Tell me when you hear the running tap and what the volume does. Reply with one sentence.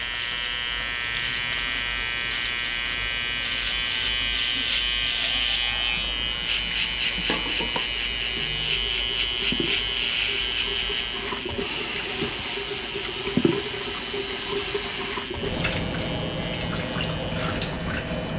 You can hear the running tap from 0.0 to 18.3 s, getting louder.